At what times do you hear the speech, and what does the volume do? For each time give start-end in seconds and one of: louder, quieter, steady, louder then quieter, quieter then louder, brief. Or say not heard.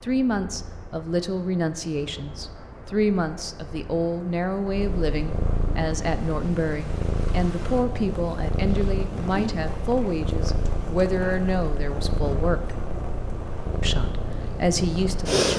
0.0-12.7 steady
13.8-15.5 brief.